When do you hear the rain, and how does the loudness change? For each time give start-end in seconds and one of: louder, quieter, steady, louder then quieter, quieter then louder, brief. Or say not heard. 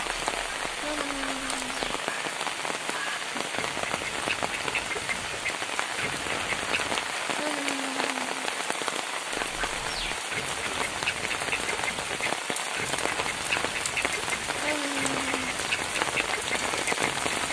0.0-17.4 steady.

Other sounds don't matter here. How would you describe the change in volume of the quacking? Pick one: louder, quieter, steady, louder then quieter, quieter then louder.
louder.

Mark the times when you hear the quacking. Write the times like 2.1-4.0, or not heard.
0.0-7.1, 9.3-17.4.